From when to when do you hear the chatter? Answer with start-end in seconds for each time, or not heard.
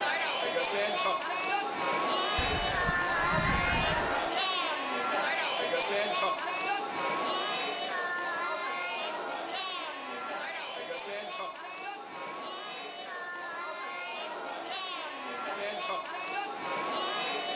0.0-17.5.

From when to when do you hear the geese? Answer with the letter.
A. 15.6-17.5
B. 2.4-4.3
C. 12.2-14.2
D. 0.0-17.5
B.